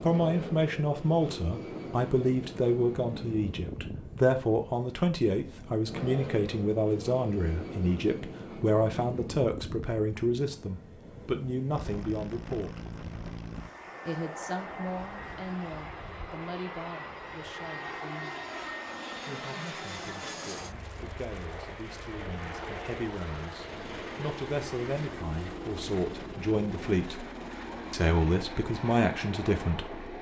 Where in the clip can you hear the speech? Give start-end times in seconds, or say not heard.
0.0-12.8, 14.1-18.4, 19.2-27.2, 27.9-30.1.